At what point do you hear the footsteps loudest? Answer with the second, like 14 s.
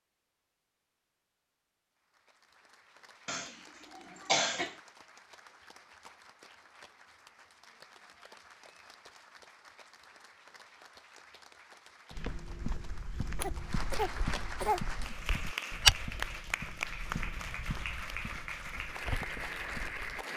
16 s.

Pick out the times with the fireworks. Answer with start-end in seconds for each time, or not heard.
not heard.